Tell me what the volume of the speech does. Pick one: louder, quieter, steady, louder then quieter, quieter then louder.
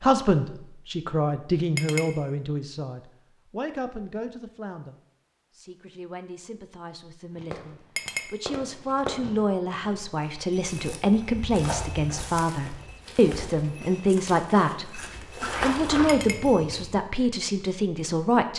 quieter then louder.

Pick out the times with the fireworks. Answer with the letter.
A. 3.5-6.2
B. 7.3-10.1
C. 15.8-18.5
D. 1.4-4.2
B.